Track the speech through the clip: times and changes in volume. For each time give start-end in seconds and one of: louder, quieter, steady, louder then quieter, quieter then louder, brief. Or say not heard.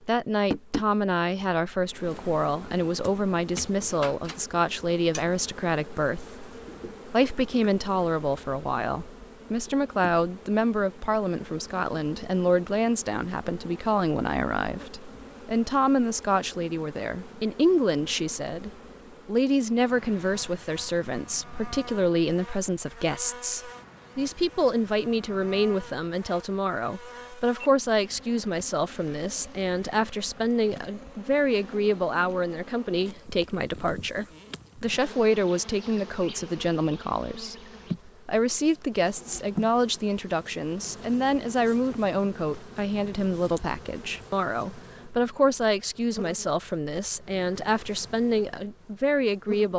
0.1-49.7 steady.